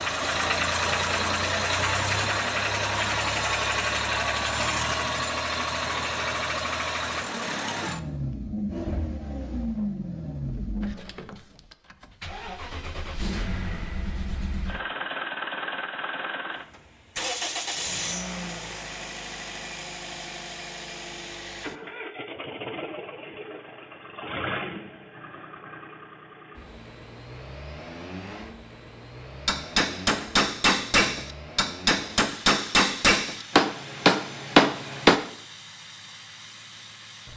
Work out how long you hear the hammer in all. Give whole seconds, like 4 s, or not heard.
6 s.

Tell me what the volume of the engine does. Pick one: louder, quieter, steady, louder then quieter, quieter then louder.
quieter.